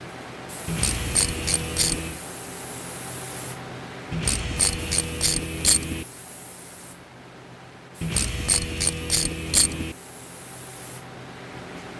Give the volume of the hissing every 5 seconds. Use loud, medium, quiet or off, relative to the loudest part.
loud, medium, loud.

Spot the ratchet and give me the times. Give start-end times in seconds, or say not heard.
0.7-2.1, 4.1-6.0, 8.0-9.9.